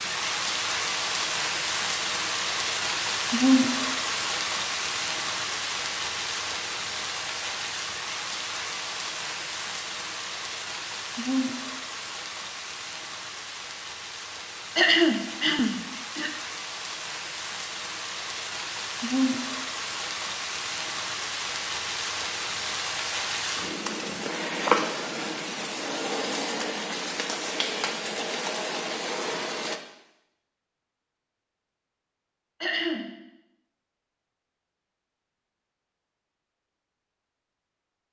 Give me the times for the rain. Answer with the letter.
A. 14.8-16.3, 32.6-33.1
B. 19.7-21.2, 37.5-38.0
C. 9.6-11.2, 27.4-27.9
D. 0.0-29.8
D.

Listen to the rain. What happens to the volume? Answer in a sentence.
The loudness of the rain goes down, then up.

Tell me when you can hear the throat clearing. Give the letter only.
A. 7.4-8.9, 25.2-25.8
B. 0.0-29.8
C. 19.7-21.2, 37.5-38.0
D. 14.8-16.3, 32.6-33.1
D.